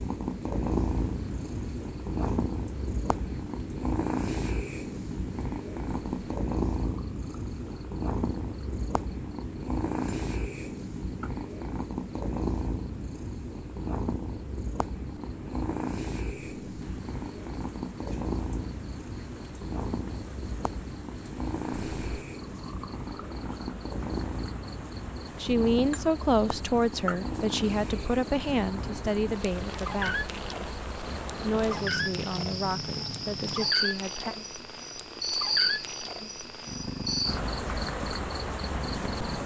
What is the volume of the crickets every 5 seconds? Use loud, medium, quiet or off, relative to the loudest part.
quiet, quiet, quiet, quiet, quiet, medium, loud, loud.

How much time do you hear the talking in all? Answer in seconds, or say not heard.
8 s.